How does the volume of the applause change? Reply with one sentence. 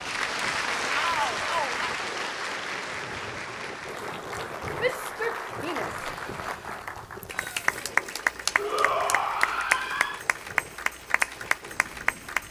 The volume of the applause goes down, then up.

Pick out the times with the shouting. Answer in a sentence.
You can hear the shouting from 0.9 to 1.8 s, from 4.8 to 6.6 s and from 8.6 to 10.2 s.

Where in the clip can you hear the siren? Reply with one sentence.
The siren can't be heard in this clip.